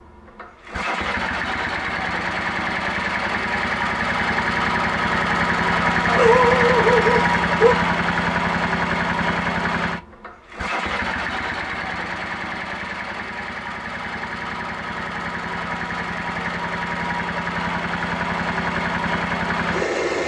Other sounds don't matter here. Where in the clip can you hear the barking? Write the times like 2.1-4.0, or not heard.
6.0-7.8.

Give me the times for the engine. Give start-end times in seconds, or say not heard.
0.0-20.2.